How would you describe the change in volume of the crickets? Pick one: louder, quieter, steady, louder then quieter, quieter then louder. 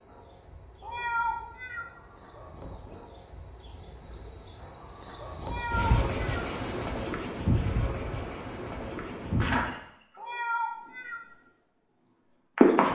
louder then quieter.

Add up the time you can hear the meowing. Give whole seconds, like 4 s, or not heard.
3 s.